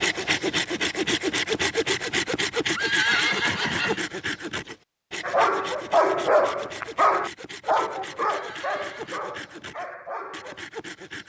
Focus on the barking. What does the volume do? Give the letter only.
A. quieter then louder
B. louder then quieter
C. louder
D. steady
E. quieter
E.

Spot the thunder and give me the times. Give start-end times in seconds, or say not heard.
not heard.